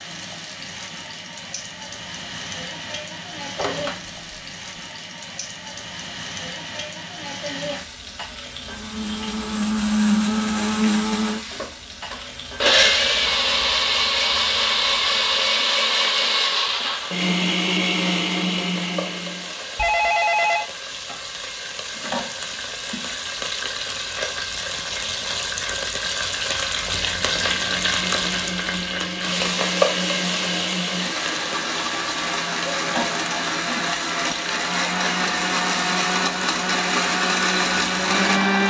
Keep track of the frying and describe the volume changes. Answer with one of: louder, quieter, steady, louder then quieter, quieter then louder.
louder.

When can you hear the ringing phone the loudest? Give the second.
20 s.